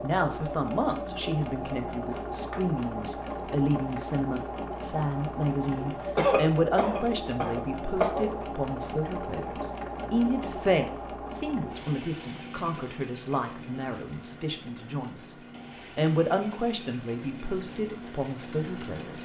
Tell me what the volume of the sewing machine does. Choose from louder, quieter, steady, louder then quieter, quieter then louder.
quieter.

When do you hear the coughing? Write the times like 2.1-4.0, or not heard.
6.2-8.3.